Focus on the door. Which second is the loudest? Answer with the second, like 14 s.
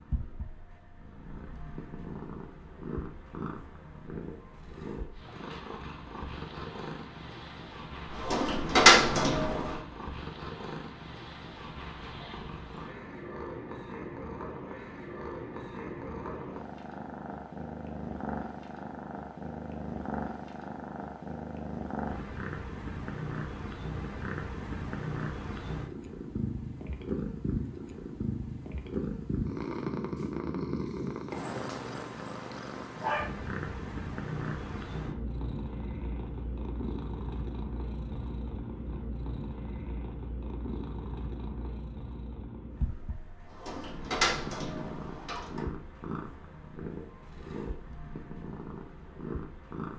9 s.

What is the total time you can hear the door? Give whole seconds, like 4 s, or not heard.
4 s.